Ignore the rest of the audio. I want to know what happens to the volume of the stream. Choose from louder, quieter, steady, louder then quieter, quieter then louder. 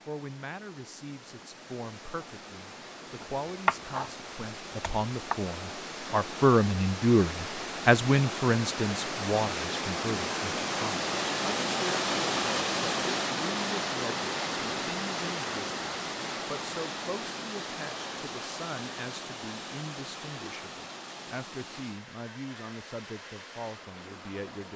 louder then quieter.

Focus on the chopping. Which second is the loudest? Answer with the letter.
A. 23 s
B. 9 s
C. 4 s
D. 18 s
C.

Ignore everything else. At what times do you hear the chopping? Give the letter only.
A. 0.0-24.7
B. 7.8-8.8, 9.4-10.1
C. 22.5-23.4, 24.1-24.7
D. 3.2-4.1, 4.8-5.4
D.